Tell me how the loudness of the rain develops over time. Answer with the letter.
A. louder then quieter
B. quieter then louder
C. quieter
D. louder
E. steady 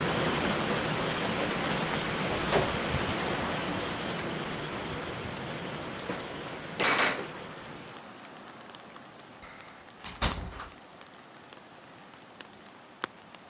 C.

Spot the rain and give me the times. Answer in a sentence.
The rain can be heard from 0.0 to 13.4 s.